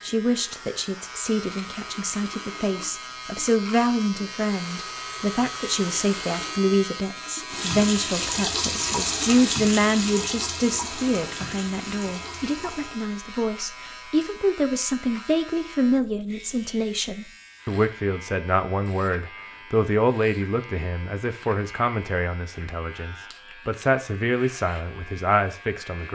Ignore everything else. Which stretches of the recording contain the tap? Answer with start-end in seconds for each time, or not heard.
0.0-13.1.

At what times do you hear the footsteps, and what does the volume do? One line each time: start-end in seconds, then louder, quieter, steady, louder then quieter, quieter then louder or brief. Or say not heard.
not heard.